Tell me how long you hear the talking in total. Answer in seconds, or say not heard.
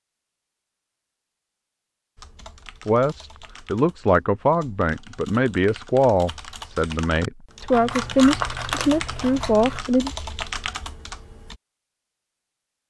7 s.